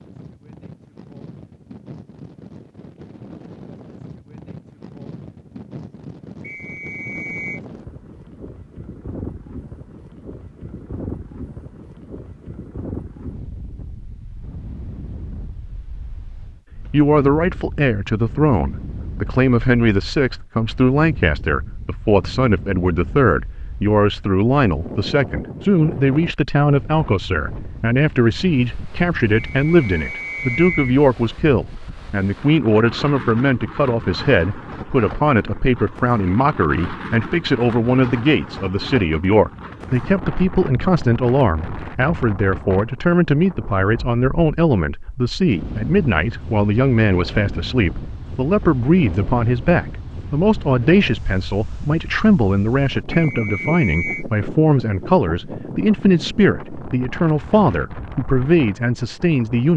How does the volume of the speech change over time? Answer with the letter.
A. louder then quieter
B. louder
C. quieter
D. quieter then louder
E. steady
E.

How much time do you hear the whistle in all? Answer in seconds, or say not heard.
4 s.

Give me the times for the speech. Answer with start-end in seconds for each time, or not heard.
16.9-59.7.